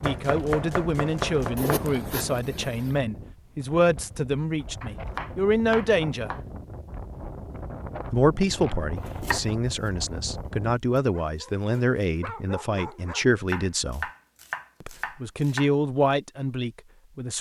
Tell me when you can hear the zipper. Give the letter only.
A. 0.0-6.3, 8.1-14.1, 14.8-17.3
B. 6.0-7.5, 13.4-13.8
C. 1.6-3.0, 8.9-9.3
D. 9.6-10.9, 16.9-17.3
C.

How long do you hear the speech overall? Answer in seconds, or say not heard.
15 s.